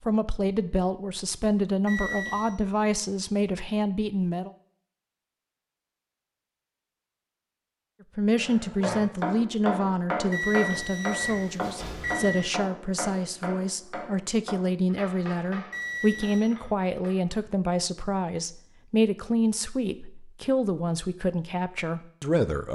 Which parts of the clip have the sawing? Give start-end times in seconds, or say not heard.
not heard.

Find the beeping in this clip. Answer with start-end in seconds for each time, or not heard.
1.9-2.5, 10.3-12.5, 15.7-16.4.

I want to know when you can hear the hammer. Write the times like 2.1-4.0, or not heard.
8.4-17.4.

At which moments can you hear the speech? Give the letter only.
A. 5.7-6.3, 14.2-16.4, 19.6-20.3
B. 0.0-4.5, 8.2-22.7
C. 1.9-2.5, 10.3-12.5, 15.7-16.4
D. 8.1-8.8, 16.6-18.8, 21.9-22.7
B.